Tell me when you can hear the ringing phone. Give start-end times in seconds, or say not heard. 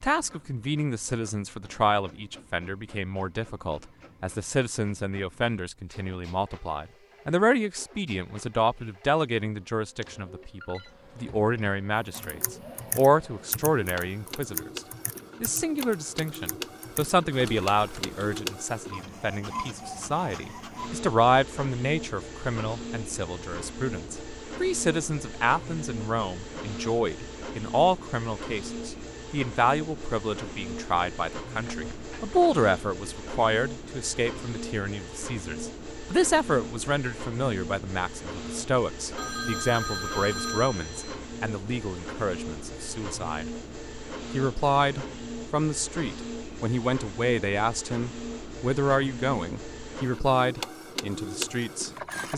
10.0-10.9, 31.6-32.4, 39.1-41.2.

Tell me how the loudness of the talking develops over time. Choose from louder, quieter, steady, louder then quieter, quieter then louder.
steady.